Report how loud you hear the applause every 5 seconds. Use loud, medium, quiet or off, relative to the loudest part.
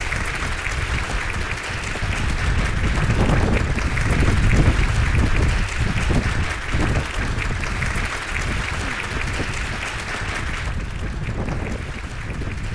loud, loud, medium.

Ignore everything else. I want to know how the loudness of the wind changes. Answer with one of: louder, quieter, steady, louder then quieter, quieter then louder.
louder then quieter.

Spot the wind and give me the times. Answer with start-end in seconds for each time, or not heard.
0.0-12.7.